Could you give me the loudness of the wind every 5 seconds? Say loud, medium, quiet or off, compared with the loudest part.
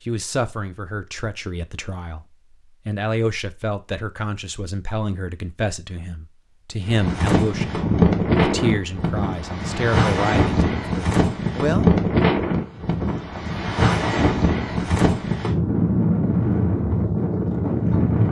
off, loud, loud, loud.